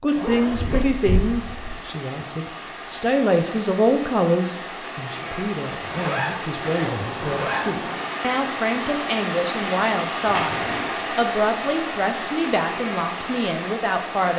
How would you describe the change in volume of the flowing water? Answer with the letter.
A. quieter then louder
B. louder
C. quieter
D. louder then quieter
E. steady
B.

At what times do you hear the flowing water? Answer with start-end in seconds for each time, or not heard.
0.0-14.3.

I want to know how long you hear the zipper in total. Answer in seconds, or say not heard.
4 s.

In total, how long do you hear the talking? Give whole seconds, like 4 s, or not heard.
14 s.